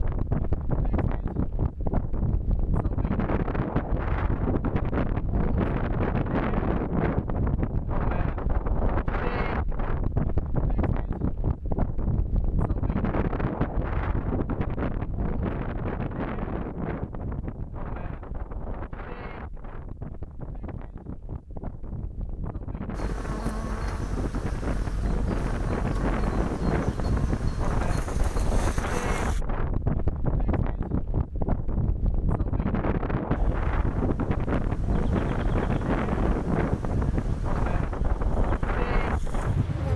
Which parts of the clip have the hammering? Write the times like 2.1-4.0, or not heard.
not heard.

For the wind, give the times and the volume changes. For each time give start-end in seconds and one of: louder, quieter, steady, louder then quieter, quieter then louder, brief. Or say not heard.
0.0-39.9 quieter then louder.